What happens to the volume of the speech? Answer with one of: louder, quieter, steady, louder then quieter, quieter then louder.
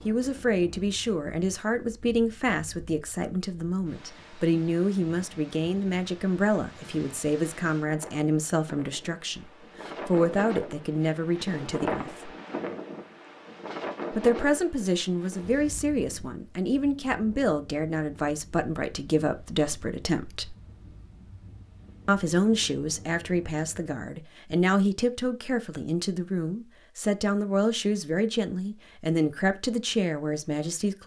steady.